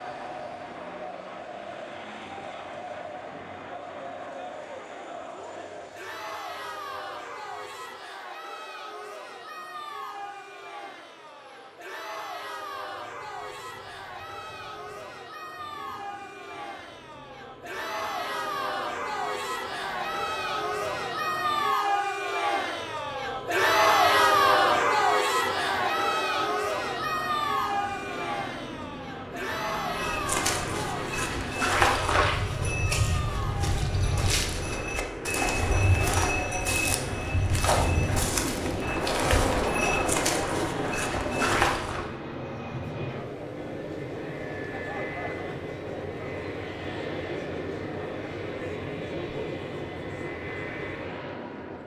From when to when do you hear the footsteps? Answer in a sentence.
The footsteps can be heard from 29.9 to 42.0 s.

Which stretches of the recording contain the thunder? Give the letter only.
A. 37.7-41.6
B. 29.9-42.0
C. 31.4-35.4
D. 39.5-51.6
A.